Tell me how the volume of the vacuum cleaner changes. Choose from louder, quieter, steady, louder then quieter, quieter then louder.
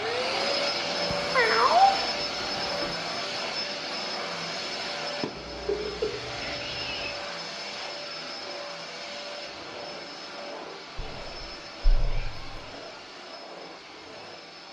quieter.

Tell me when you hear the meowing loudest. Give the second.
2 s.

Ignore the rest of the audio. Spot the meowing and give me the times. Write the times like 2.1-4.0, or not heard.
1.1-3.0, 5.3-7.2, 10.9-12.7.